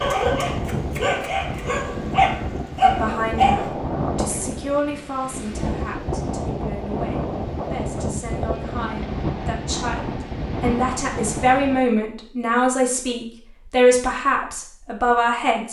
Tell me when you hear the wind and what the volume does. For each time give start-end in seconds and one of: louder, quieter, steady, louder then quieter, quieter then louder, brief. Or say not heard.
0.0-11.9 steady.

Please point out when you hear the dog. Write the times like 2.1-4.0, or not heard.
0.0-3.7.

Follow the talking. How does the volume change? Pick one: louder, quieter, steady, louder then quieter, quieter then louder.
quieter then louder.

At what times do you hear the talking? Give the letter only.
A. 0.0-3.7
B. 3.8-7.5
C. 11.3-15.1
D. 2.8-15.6
D.